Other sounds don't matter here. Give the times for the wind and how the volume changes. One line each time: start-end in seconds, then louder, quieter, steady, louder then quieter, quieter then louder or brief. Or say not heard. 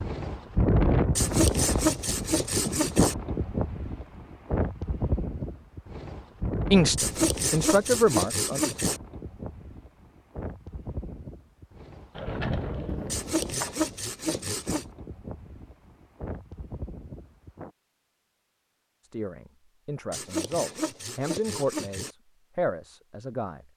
0.0-17.7 quieter.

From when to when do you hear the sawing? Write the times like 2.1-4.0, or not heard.
1.1-3.1, 7.0-9.0, 13.1-14.8, 20.1-22.1.